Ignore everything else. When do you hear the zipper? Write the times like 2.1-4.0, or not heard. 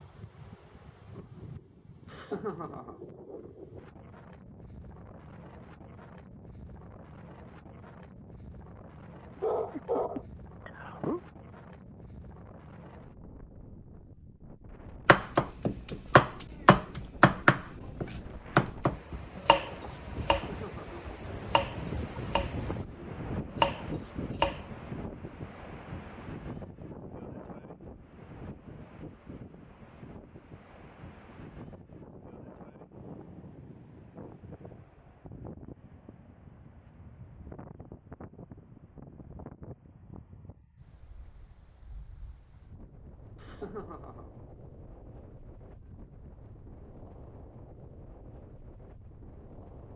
not heard.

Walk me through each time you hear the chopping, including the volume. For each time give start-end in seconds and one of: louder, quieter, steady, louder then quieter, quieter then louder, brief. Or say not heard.
15.1-24.6 quieter then louder.